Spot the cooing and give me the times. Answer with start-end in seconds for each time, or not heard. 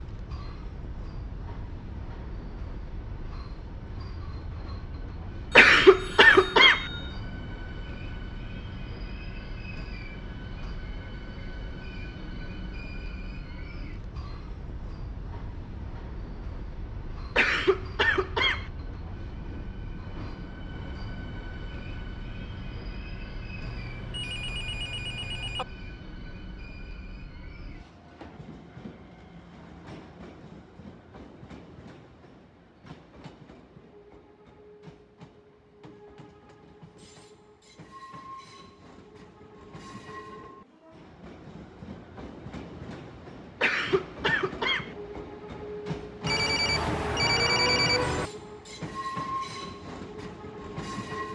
not heard.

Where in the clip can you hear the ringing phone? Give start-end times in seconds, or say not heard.
5.5-7.2, 23.6-25.6, 46.2-48.3.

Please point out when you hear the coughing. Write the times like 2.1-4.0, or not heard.
5.5-6.8, 17.4-18.6, 43.6-44.9.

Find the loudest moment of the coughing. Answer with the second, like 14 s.
6 s.